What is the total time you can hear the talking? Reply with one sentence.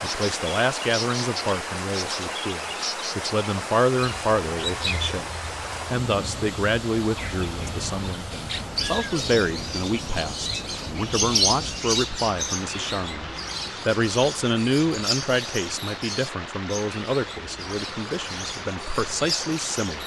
You can hear the talking for 20 seconds altogether.